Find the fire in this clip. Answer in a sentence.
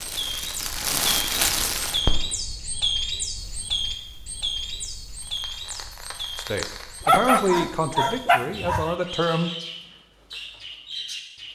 The fire can be heard from 0.0 to 7.4 s.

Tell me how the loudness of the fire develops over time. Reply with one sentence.
The loudness of the fire goes down, then up.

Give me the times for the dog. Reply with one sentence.
The dog can be heard from 7.0 to 8.9 s.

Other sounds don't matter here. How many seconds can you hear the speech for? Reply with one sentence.
The speech can be heard for 3 seconds in total.